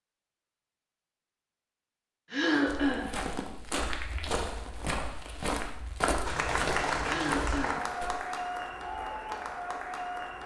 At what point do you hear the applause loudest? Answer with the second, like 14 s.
7 s.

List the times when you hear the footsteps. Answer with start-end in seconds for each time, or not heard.
2.6-8.1.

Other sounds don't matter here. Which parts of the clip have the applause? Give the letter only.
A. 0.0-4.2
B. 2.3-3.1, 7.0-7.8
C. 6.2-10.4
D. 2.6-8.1
C.